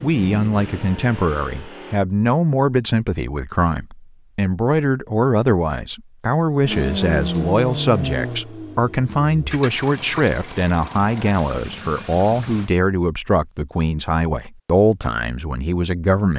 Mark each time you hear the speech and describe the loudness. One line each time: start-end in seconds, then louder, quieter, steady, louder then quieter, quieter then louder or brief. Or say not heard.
0.0-16.3 steady.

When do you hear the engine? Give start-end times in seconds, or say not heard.
0.0-2.0, 6.7-12.7.